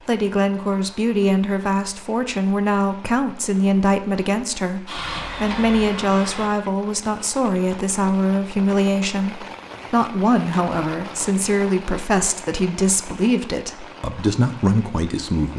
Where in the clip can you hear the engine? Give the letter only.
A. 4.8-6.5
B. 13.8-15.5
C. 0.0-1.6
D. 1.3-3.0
A.